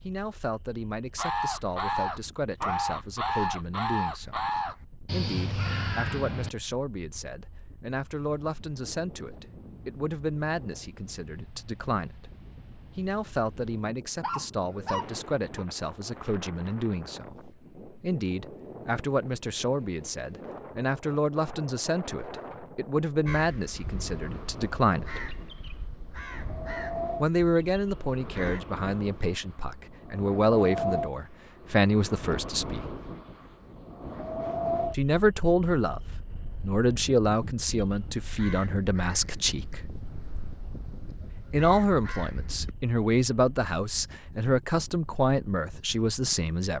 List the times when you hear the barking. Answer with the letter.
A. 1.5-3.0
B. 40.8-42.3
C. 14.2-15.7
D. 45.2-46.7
C.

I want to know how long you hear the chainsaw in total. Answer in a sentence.
The chainsaw can't be heard in this clip.